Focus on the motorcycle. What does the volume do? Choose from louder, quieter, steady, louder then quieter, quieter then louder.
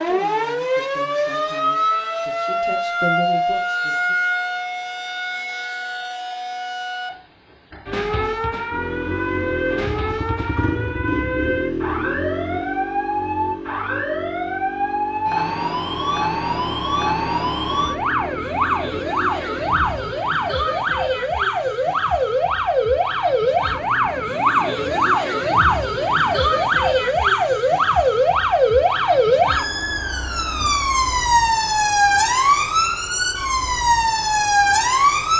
quieter.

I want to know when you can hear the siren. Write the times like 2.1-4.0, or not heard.
0.0-35.3.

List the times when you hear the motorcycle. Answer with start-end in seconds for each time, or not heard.
8.7-20.1.